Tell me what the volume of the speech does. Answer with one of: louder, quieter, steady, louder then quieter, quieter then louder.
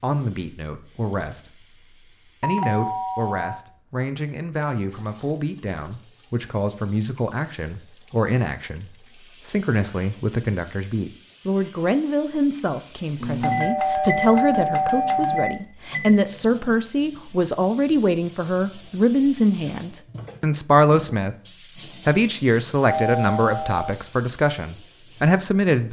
louder.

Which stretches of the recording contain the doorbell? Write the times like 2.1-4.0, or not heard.
2.4-3.6, 12.9-15.6, 22.9-23.9.